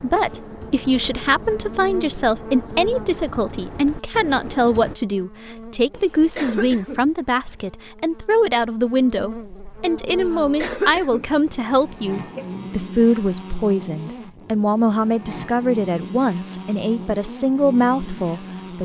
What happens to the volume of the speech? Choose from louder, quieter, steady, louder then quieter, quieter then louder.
steady.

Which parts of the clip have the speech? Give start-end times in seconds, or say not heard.
0.0-18.7.